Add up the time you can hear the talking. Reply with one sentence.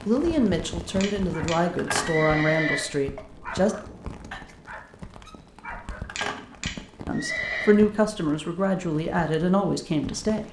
You can hear the talking for 7 seconds altogether.